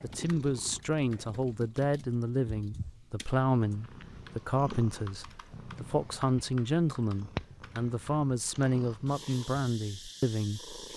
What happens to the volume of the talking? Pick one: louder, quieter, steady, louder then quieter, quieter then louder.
steady.